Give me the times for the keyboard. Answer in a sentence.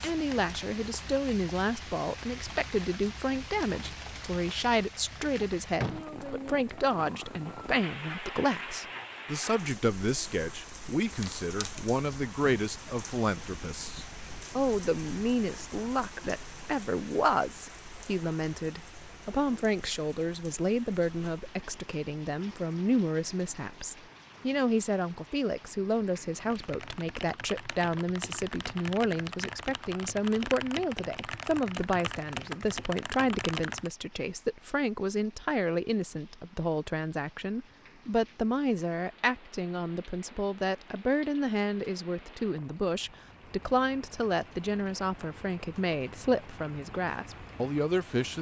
You can hear the keyboard from 26.4 to 33.9 s.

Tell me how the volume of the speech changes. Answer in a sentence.
The loudness of the speech stays about the same.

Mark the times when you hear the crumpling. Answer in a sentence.
You can hear the crumpling from 11.2 to 11.8 s.